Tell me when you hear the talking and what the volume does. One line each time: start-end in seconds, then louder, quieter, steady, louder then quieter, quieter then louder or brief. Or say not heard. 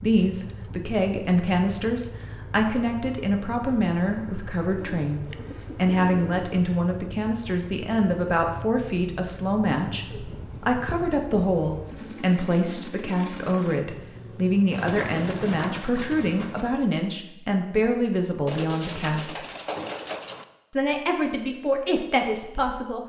0.0-19.4 steady
20.7-23.0 brief.